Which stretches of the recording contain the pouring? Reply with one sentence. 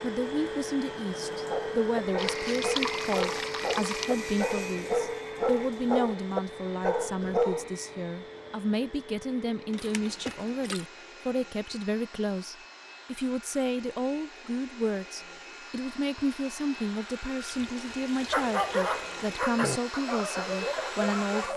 The pouring can be heard from 2.1 to 4.1 s, from 9.8 to 10.8 s and from 17.4 to 19.4 s.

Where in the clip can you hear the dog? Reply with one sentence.
The dog can be heard from 1.3 to 7.7 s and from 18.3 to 21.5 s.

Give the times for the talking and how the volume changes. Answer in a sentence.
The talking can be heard from 0.0 to 21.5 s, at a steady volume.